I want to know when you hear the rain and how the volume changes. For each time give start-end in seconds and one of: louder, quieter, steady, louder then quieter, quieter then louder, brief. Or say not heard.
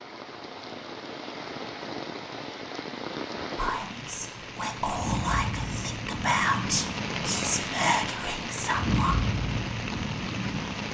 0.0-10.8 louder.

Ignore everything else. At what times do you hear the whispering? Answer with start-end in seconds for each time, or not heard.
3.5-9.2.